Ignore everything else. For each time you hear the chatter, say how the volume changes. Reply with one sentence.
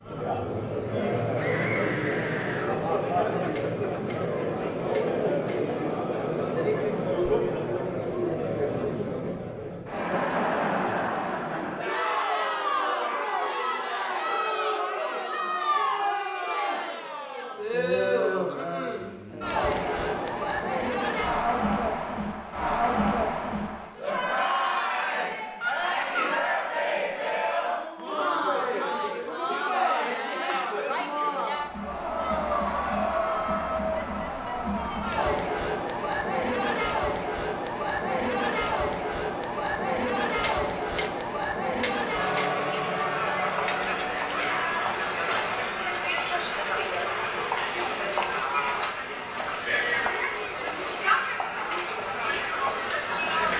The chatter can be heard from 0.0 to 53.5 s, at a steady volume.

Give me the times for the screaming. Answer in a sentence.
The screaming can be heard from 1.4 to 2.8 s, from 25.6 to 26.4 s and from 44.4 to 44.9 s.